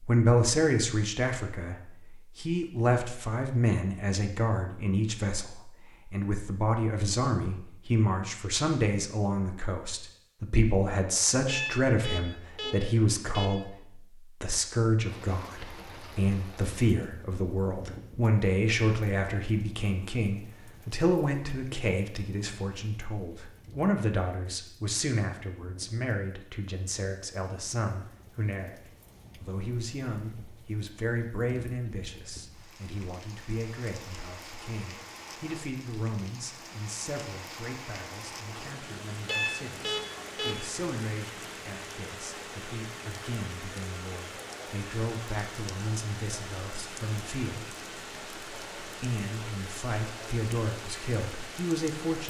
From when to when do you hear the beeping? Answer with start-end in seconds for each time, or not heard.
11.4-13.5, 39.2-40.6.